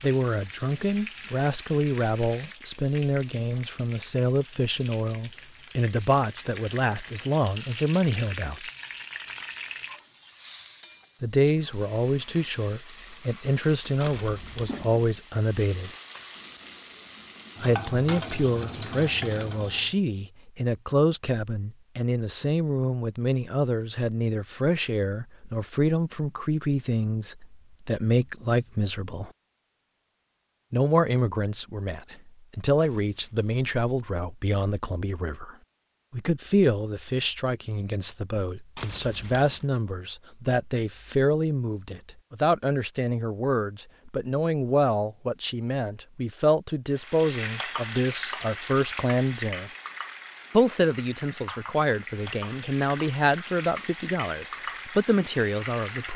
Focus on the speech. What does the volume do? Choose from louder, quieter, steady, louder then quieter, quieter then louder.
steady.